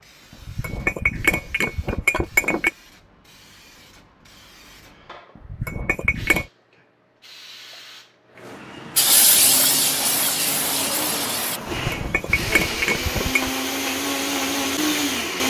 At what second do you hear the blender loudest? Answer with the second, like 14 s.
15 s.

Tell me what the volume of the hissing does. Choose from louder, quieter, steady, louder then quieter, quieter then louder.
louder then quieter.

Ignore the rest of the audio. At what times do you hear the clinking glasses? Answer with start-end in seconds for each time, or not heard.
0.4-2.7, 5.4-6.5, 11.7-13.5.